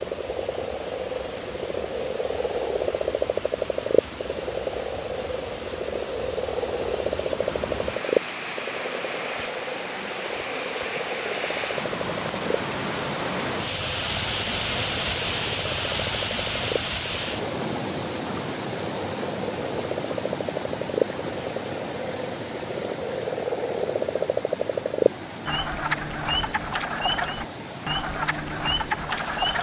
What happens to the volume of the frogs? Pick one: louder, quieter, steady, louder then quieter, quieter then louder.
quieter then louder.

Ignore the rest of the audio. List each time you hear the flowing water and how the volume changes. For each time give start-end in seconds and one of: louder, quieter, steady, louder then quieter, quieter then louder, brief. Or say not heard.
0.0-29.5 louder then quieter.